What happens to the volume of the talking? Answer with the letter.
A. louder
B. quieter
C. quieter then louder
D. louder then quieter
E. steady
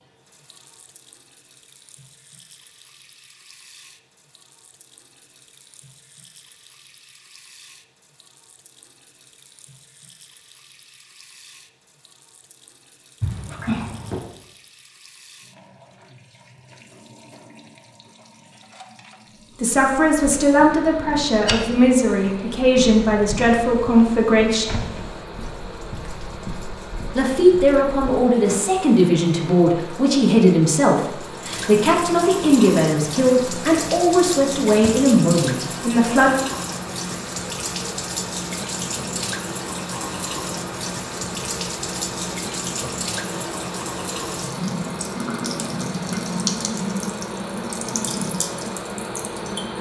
E.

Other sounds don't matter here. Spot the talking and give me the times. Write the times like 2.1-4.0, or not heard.
19.6-24.9, 27.1-36.3.